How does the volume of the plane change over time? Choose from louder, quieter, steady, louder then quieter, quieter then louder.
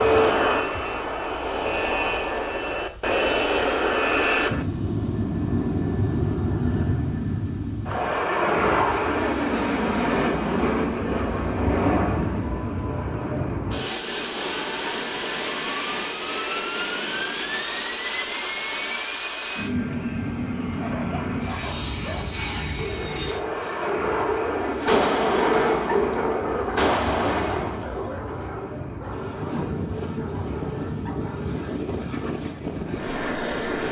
quieter.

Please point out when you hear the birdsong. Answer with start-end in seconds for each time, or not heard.
not heard.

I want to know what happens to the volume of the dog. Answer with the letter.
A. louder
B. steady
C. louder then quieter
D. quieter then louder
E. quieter
C.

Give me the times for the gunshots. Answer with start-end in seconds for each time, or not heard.
24.9-27.9.